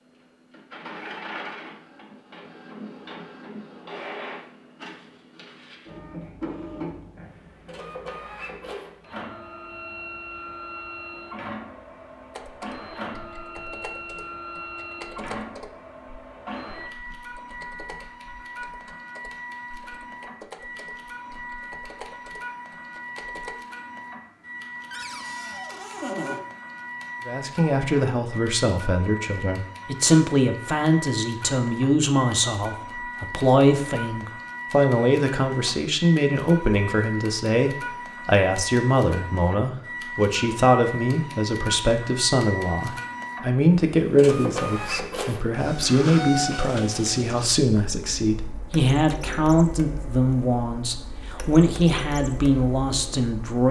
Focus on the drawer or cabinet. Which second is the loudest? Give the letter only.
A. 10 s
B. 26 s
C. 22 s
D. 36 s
B.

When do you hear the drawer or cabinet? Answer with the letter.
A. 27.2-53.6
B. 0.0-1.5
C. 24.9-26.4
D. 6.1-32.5
C.